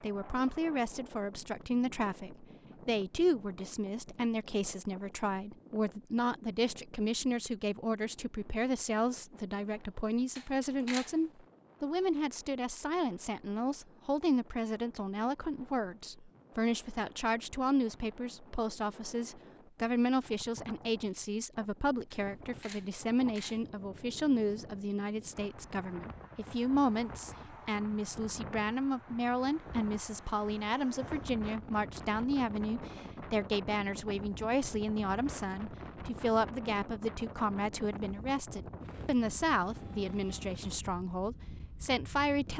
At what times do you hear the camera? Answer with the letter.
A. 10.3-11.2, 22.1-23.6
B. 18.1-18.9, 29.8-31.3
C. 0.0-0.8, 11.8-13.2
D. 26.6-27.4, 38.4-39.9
A.